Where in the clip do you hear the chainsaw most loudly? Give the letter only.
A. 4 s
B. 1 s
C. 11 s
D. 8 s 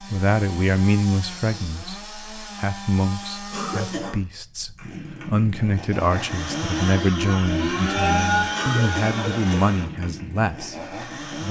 D.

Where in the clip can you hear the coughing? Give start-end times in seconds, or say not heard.
3.5-4.2, 8.5-9.9.